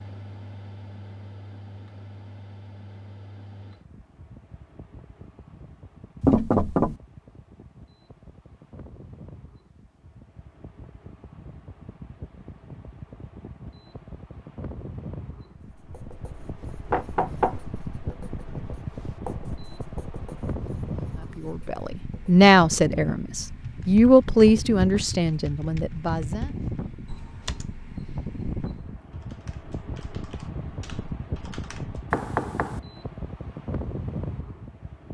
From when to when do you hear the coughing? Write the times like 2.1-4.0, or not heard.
not heard.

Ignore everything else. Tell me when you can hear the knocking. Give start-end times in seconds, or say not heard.
6.2-7.0, 16.9-17.6, 32.1-32.8.